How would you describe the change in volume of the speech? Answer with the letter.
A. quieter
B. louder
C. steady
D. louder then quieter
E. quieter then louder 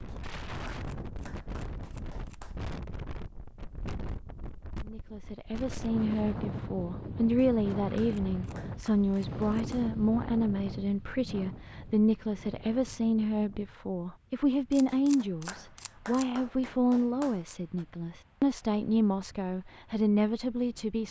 C.